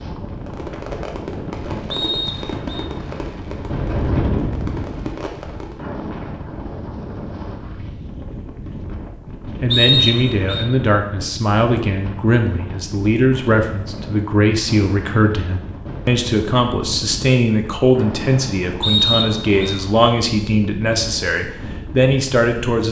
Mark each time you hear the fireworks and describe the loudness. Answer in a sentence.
You can hear the fireworks from 0.3 to 5.8 s, getting quieter then louder.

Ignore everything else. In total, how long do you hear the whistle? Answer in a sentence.
You can hear the whistle for 3 seconds altogether.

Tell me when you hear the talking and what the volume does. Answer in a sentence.
You can hear the talking from 9.6 to 22.8 s, at a steady volume.